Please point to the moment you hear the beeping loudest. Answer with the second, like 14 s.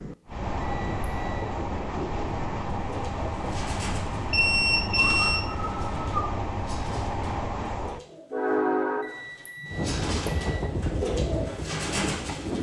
5 s.